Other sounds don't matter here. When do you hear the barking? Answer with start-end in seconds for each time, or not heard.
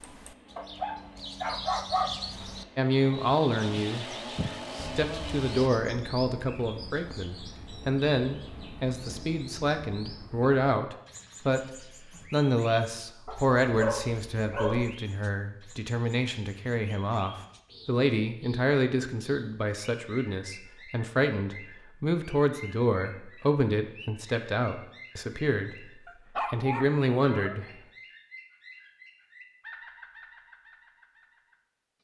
0.6-2.1, 13.2-14.9, 26.1-27.6.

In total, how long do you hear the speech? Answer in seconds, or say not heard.
24 s.